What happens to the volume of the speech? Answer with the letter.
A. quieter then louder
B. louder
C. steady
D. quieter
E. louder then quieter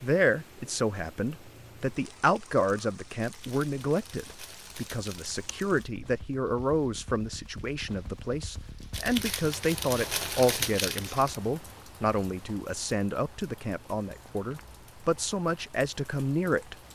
C.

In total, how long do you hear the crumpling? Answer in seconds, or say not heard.
5 s.